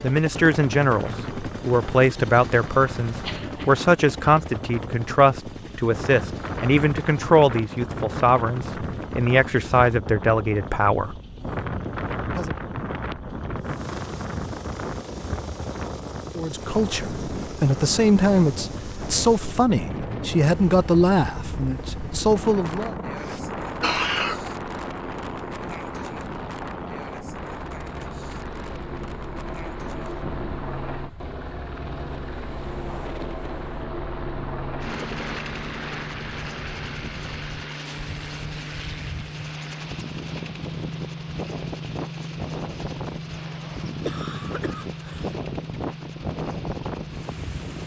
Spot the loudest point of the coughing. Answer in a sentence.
The volume of the coughing peaks at 24 seconds.